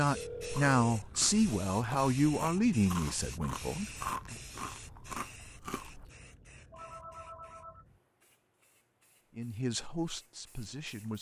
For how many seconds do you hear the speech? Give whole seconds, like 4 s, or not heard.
6 s.